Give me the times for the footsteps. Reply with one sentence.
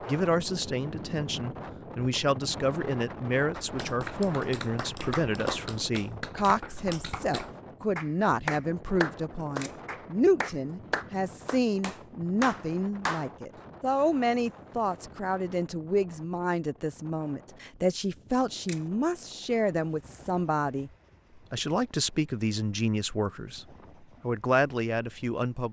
You can't hear the footsteps here.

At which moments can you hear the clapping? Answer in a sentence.
You can hear the clapping from 3.5 to 13.3 s.